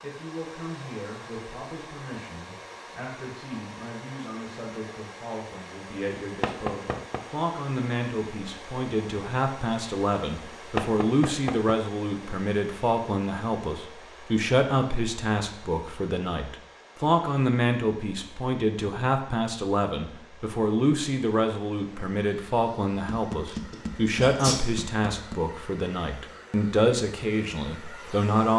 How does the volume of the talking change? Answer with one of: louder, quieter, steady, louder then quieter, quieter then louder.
louder.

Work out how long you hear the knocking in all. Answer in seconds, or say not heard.
4 s.